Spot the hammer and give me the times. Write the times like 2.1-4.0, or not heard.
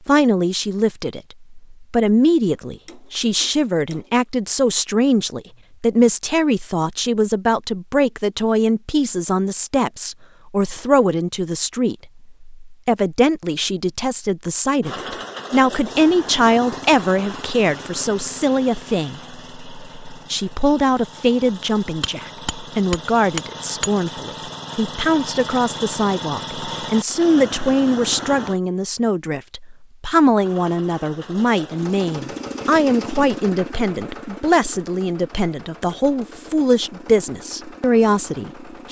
2.6-4.2, 22.0-23.9.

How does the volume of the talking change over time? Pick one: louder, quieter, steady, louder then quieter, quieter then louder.
steady.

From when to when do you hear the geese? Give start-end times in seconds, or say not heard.
not heard.